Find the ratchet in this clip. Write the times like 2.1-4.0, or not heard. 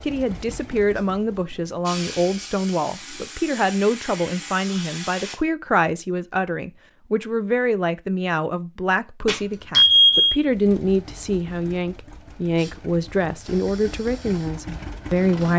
not heard.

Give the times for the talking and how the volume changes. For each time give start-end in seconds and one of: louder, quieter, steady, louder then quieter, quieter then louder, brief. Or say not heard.
0.0-15.5 steady.